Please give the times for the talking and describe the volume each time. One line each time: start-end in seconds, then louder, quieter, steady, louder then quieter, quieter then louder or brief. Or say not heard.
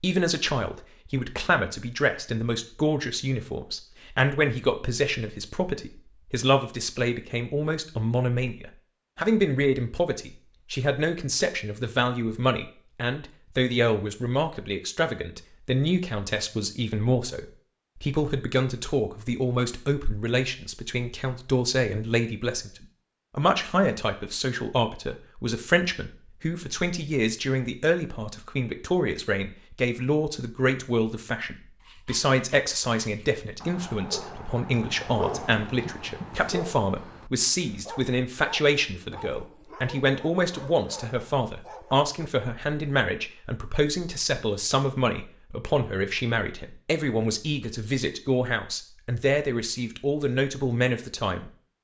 0.0-51.5 steady.